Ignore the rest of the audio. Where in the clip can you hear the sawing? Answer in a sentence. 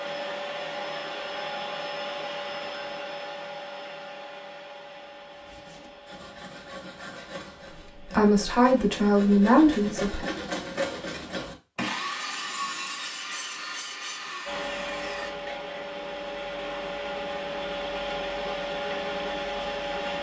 The sawing can be heard from 5.3 to 15.8 s.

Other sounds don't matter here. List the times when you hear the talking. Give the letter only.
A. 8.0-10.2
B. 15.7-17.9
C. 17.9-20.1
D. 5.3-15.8
A.